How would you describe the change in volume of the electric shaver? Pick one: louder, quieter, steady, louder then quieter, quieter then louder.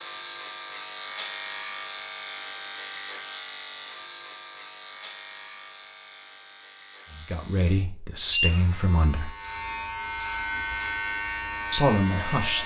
quieter then louder.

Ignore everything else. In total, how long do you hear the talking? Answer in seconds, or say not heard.
3 s.